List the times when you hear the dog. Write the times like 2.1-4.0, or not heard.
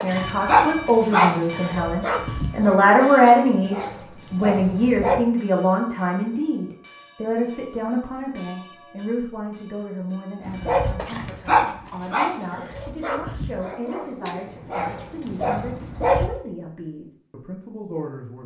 0.0-5.2, 10.4-16.3.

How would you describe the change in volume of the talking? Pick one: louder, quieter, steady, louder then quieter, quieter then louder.
quieter.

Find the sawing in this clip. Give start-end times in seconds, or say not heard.
not heard.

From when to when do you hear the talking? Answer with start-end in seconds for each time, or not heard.
0.0-18.4.